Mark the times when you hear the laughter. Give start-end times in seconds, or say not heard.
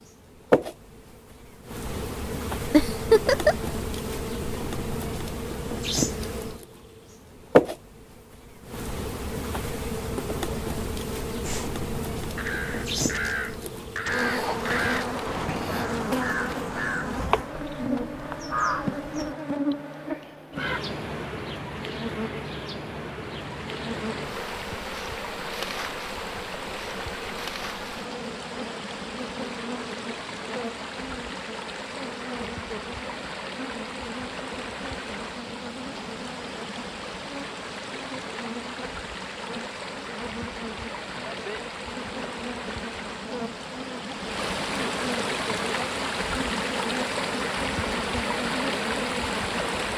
2.7-3.5.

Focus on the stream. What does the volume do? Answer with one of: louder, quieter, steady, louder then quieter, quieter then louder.
louder.